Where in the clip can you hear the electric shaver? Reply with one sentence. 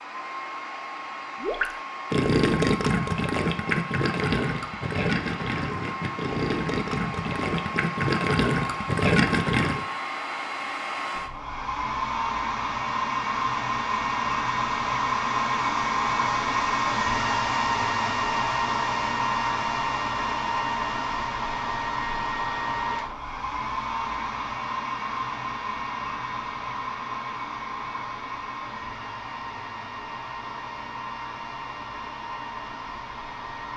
The electric shaver can't be heard in this clip.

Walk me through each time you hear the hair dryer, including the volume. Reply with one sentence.
The hair dryer can be heard from 0.0 to 33.7 s, getting louder then quieter.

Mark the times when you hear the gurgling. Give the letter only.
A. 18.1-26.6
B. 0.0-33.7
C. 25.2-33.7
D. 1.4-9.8
D.